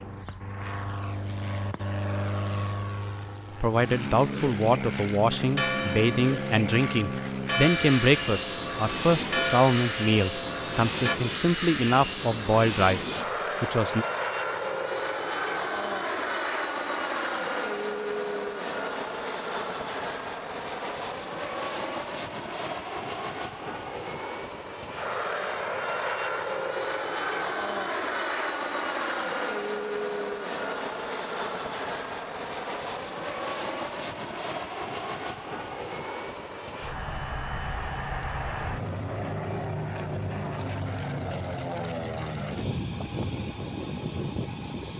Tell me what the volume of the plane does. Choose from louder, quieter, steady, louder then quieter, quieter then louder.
steady.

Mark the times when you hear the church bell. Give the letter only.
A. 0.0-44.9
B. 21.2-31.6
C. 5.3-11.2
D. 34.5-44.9
C.